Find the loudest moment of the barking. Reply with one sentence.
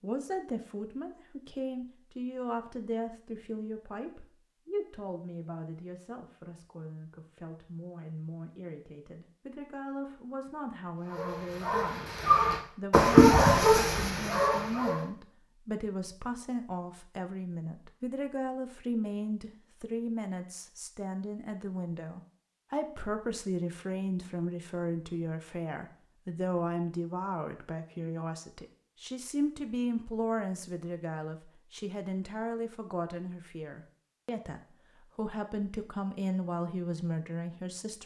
The loudest moment of the barking is at 13 seconds.